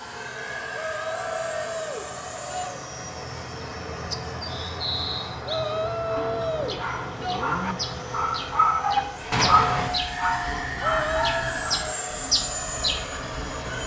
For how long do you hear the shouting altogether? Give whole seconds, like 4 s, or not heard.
5 s.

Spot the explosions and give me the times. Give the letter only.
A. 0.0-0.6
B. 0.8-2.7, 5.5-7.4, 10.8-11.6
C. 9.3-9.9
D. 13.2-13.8
C.